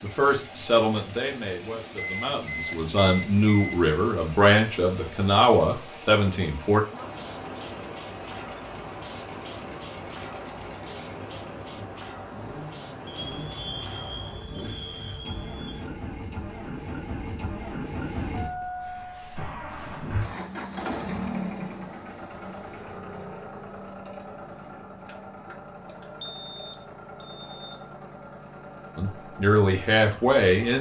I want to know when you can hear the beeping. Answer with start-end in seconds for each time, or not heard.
1.9-3.8, 13.1-15.8, 26.2-27.8.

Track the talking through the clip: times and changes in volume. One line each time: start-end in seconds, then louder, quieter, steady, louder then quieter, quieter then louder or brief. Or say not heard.
0.0-6.8 quieter then louder
28.9-30.7 brief.